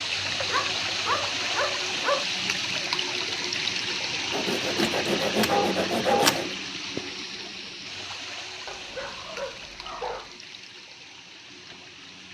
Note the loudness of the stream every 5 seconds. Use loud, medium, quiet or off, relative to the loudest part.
loud, medium, quiet.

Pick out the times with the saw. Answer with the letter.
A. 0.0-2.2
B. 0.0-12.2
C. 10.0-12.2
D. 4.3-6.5
D.